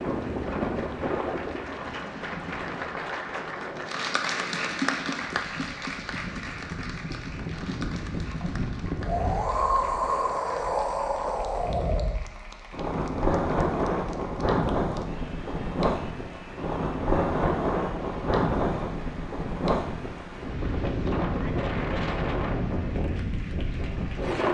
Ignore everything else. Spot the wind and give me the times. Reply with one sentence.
The wind can be heard from 0.0 to 24.4 s.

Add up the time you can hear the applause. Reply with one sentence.
You can hear the applause for 24 seconds altogether.